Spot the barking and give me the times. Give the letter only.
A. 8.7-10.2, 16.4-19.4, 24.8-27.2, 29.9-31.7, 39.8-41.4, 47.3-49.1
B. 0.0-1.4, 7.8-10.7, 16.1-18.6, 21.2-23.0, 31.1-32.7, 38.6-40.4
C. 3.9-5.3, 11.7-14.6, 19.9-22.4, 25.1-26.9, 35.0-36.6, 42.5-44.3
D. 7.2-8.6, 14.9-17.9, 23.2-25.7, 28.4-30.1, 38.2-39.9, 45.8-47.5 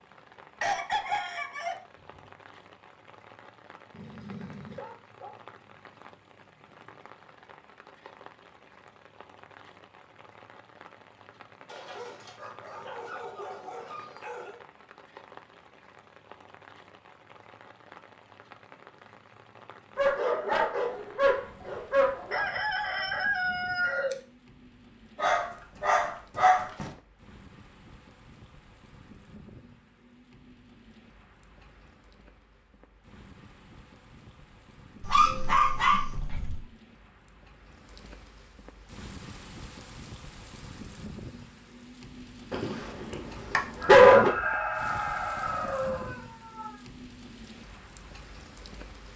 C.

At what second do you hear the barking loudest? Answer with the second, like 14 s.
44 s.